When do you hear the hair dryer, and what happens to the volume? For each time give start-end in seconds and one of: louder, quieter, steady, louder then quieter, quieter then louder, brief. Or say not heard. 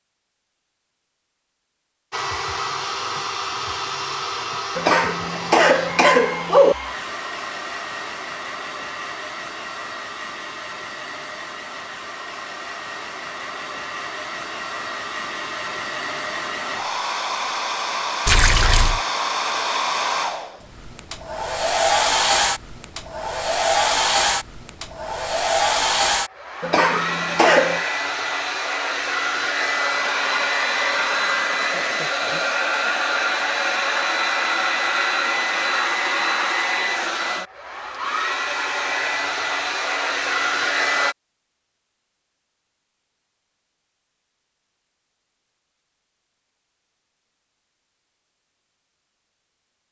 2.1-41.1 louder.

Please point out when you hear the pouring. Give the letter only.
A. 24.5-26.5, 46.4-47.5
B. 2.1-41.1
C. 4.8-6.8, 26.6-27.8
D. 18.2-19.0
D.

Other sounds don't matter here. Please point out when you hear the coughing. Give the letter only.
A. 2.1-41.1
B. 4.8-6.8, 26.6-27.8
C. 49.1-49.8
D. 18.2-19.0
B.